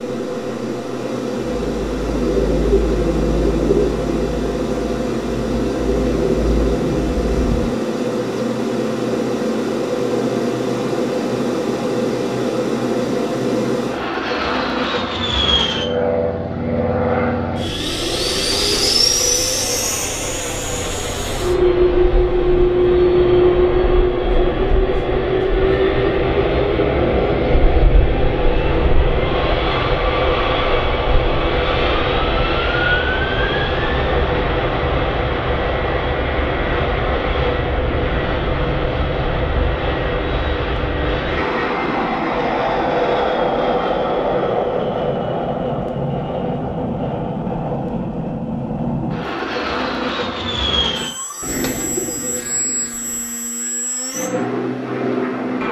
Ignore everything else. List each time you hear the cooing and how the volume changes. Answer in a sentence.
You can hear the cooing from 1.4 to 7.7 s, getting quieter then louder; and briefly from 51.4 to 53.2 s.